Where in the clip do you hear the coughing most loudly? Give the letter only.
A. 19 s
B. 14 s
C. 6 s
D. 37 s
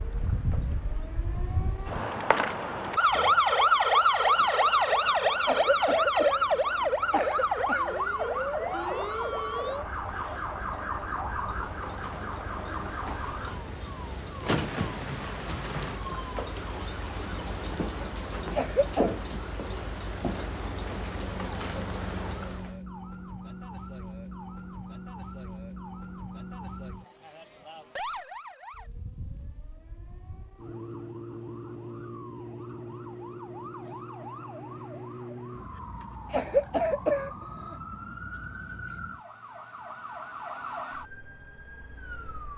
D.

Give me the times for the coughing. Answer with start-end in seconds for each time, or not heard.
5.4-7.9, 18.5-19.1, 36.2-37.8.